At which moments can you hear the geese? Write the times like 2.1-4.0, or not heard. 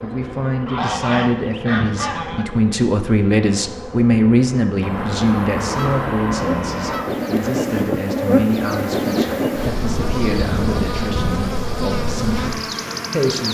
0.7-2.5, 4.8-7.1, 9.8-11.4.